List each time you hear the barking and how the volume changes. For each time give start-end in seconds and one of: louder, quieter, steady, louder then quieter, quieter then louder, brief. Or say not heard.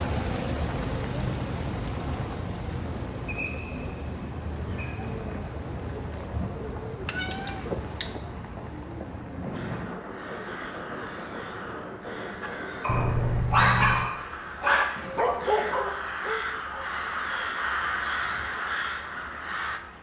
12.4-17.6 quieter.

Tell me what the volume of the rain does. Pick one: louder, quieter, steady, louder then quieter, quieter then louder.
quieter.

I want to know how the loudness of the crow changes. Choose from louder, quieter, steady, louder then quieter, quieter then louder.
louder.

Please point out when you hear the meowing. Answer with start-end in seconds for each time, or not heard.
7.0-8.2, 12.8-14.1.